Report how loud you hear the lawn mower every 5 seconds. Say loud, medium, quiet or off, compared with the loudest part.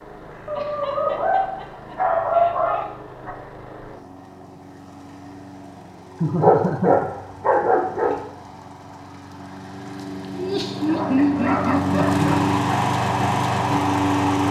quiet, quiet, loud.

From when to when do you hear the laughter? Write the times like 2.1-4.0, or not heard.
0.6-2.9, 6.2-7.0, 10.3-12.5.